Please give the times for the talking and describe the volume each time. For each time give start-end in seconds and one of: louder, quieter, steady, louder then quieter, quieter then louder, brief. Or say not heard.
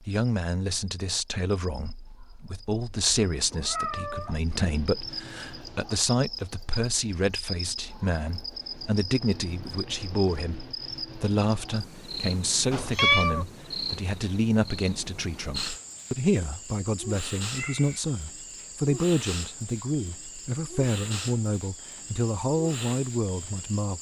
0.0-23.9 steady.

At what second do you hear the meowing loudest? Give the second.
13 s.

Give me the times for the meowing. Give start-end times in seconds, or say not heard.
3.0-4.4, 12.7-13.4, 17.5-18.0.